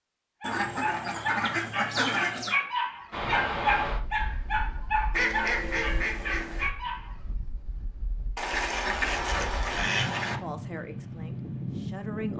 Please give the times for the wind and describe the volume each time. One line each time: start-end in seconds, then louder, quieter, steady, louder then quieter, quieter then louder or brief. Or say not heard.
3.1-12.3 quieter then louder.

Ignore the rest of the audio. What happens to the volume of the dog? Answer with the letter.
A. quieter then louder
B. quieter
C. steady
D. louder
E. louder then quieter
E.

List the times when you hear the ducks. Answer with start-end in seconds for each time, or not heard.
0.4-2.6, 5.1-6.7, 8.3-10.4.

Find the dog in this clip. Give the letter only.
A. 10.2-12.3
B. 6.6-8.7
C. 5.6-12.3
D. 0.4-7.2
D.